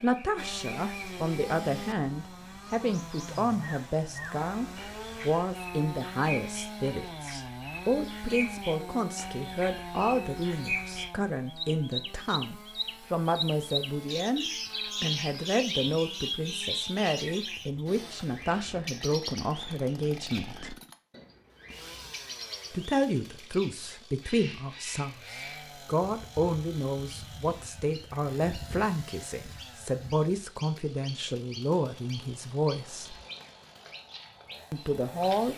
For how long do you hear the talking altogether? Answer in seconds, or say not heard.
31 s.